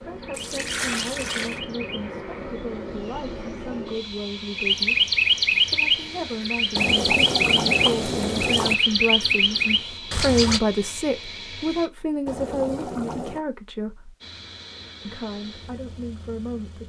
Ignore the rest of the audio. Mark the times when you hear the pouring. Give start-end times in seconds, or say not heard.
0.3-1.6, 6.8-8.8, 12.2-13.4.